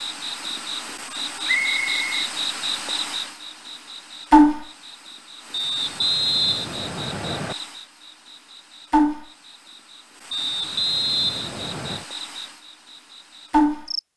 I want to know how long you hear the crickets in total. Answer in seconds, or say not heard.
14 s.